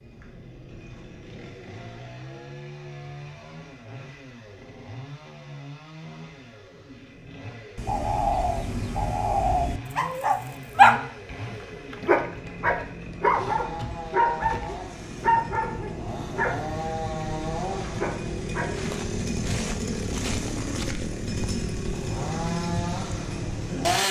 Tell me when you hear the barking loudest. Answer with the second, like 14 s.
11 s.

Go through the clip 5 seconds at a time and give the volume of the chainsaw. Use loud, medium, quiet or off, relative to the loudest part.
quiet, quiet, medium, loud, loud.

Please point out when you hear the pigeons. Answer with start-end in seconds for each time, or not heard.
7.8-9.8.